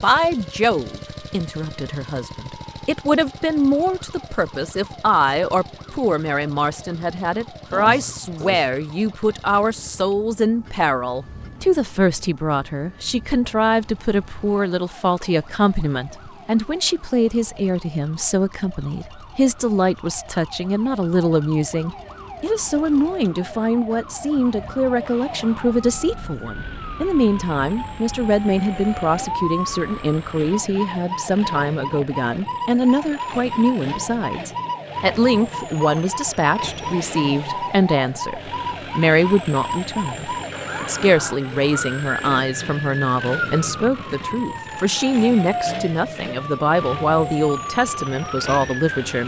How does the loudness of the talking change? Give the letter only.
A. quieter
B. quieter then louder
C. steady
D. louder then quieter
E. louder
C.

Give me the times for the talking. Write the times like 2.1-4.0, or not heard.
0.0-49.2.